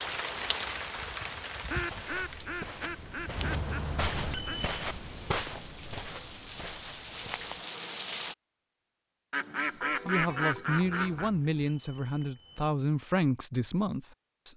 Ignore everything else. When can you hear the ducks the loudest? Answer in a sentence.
The loudest moment of the ducks is at 10 seconds.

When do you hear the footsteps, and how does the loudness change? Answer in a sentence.
You can hear the footsteps from 1.8 to 7.7 s, getting louder then quieter.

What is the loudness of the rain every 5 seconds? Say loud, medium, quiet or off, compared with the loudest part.
loud, loud, off.